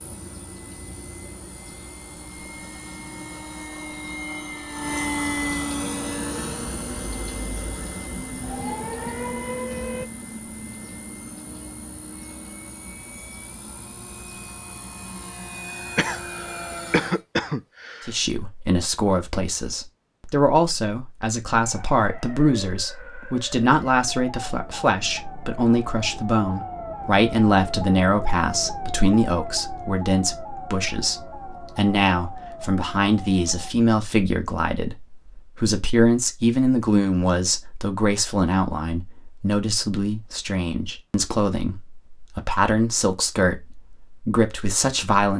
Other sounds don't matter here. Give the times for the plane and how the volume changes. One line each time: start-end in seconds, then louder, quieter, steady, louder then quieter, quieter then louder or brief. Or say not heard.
0.0-17.2 louder then quieter.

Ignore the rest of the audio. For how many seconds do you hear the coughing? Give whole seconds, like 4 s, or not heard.
2 s.